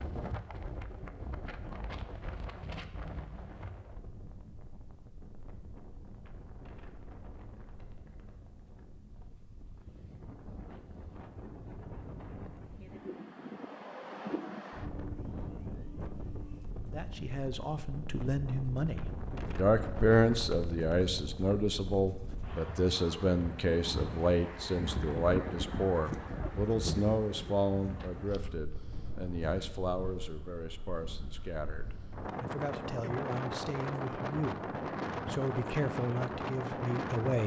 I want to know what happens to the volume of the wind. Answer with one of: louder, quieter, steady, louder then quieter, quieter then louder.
louder.